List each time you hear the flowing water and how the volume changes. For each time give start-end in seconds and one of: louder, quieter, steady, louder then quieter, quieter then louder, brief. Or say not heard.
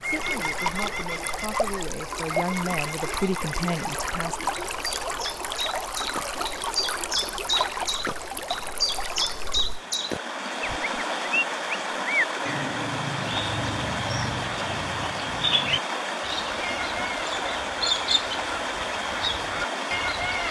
0.0-20.4 steady.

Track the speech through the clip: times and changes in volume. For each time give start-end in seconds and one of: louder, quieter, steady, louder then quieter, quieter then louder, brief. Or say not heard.
0.0-4.5 louder.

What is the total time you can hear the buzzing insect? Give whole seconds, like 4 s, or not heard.
not heard.